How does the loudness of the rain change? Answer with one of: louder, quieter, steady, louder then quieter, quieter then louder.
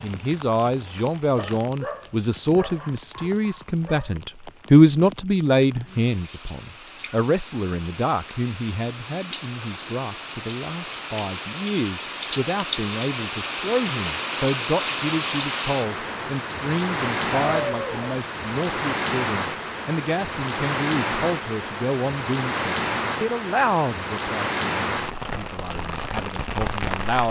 louder.